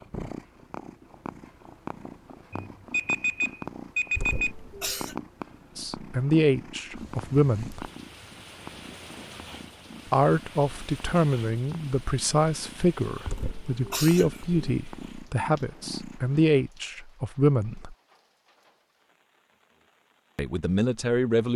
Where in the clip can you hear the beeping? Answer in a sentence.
You can hear the beeping from 2.5 to 4.5 s.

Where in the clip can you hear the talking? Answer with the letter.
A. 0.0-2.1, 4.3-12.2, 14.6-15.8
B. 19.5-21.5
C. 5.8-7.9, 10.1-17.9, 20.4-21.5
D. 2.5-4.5
C.